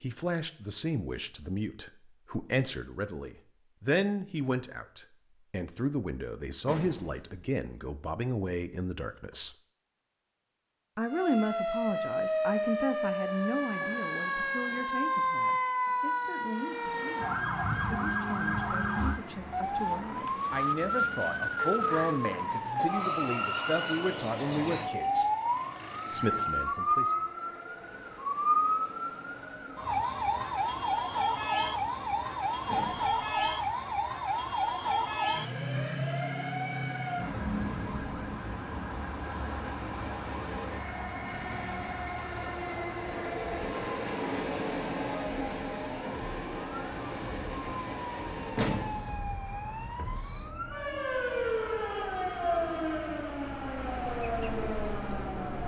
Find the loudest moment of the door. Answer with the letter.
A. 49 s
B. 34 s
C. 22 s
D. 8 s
A.